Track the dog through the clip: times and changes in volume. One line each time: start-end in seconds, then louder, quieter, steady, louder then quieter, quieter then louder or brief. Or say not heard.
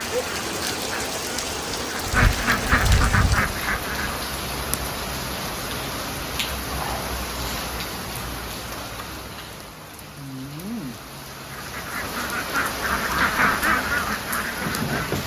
not heard.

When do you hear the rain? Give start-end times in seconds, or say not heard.
0.0-15.2.